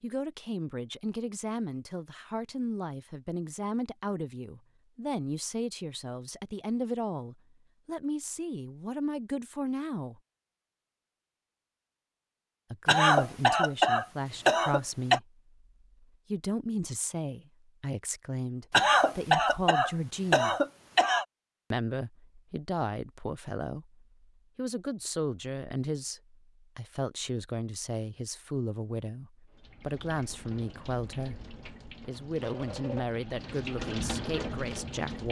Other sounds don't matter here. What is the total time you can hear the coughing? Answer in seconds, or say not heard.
5 s.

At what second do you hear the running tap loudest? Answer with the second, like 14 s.
34 s.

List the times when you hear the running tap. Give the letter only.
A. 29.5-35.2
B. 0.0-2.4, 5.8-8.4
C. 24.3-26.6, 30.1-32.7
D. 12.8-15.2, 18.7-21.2
A.